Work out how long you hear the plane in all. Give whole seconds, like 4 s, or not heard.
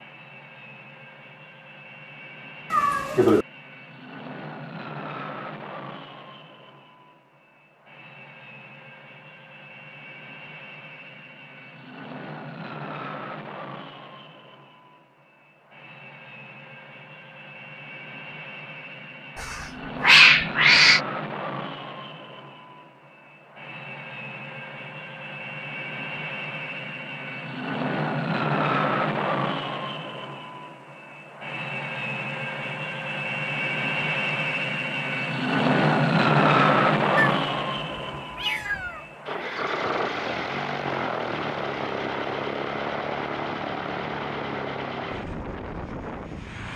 47 s.